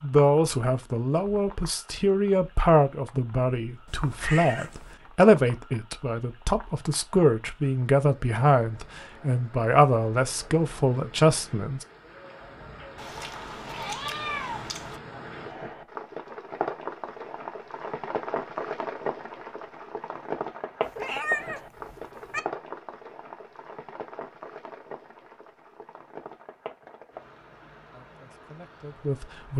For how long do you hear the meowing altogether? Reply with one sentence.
The meowing can be heard for 5 seconds in total.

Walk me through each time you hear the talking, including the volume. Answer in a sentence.
You can hear the talking from 0.0 to 11.8 s, at a steady volume; and briefly from 27.9 to 29.5 s.